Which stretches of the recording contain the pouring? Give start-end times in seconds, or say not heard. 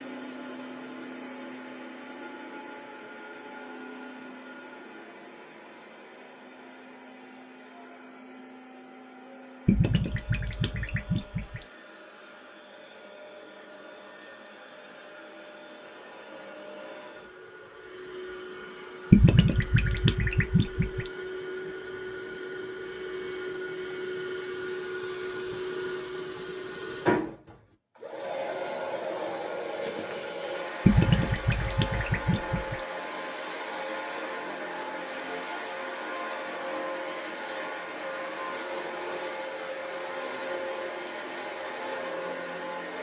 9.7-11.6, 19.1-21.1, 30.9-32.8.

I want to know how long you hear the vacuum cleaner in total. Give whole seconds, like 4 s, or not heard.
43 s.